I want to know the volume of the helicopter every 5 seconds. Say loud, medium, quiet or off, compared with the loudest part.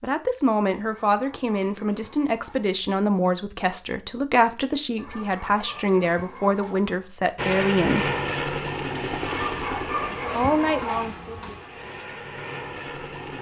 off, loud, medium.